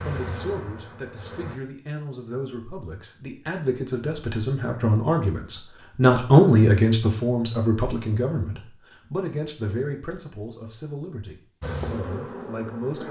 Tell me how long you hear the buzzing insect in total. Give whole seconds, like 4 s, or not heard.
3 s.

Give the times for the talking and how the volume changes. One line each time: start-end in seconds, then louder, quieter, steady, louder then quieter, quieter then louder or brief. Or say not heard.
0.0-13.0 louder then quieter.